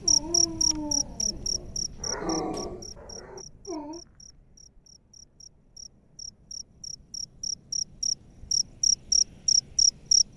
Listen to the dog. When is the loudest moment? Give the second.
2 s.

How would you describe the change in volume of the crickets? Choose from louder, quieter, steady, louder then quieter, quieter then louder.
quieter then louder.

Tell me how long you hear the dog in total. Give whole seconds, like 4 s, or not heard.
4 s.